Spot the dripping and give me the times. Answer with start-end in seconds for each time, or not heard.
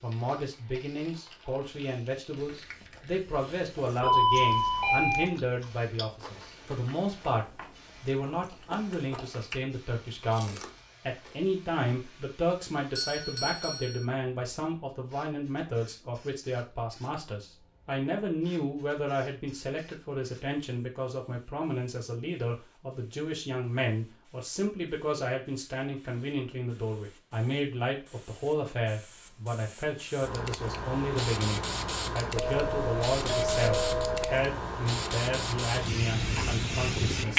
not heard.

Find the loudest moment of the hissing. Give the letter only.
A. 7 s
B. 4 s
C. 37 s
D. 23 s
C.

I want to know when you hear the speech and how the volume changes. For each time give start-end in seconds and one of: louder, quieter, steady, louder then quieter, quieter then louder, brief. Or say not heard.
0.0-37.3 steady.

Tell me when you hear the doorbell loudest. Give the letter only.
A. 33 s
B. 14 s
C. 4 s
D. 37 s
C.